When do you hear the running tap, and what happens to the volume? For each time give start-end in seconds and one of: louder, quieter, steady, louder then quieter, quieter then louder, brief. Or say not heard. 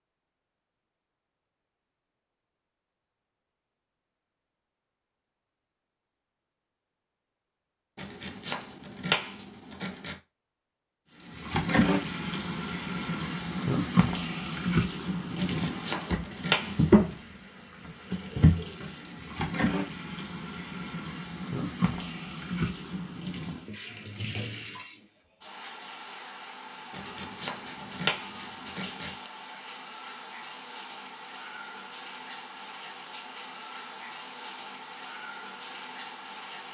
11.2-36.6 quieter.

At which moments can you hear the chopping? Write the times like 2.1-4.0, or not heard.
8.0-10.2, 15.3-17.1, 26.9-29.3.